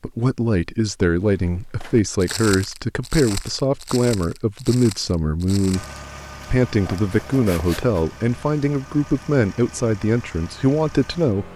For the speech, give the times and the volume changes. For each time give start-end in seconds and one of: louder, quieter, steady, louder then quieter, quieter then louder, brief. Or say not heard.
0.0-5.8 steady
6.5-11.5 steady.